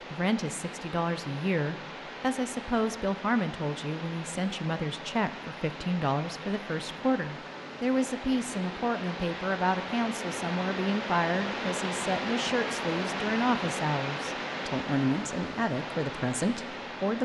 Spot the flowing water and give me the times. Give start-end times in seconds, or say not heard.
0.0-17.2.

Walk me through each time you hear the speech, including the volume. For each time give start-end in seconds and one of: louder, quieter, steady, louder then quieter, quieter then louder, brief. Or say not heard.
0.1-17.2 steady.